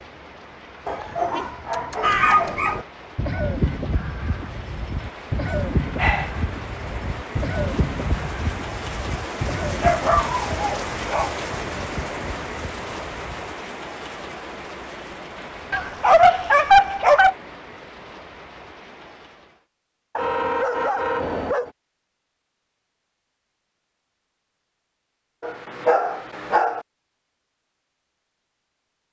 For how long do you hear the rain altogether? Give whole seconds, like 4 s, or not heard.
20 s.